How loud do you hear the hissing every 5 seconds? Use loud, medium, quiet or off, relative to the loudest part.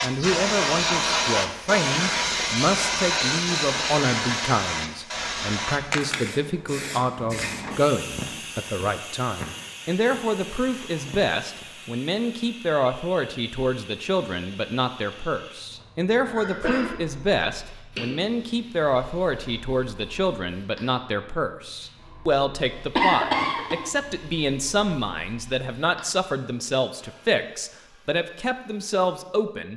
loud, medium, quiet, quiet, quiet, quiet.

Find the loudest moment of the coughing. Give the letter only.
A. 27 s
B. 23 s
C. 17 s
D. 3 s
B.